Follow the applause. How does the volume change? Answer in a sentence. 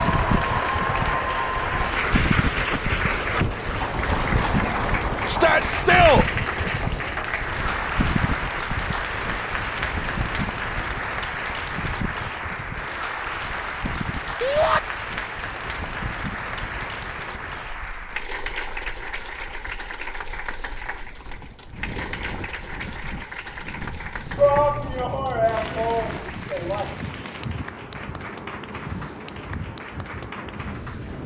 The loudness of the applause goes down.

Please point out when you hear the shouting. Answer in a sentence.
The shouting can be heard from 5.2 to 6.2 s, from 14.4 to 14.8 s and from 24.4 to 26.9 s.